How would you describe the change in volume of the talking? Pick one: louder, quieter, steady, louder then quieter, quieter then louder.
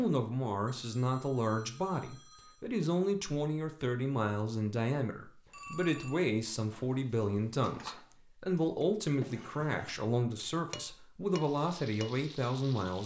steady.